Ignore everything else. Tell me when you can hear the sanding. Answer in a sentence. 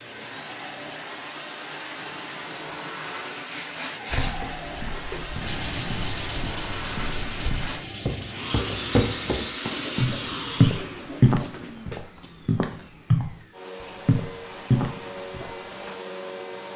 You can hear the sanding from 3.4 to 11.9 s.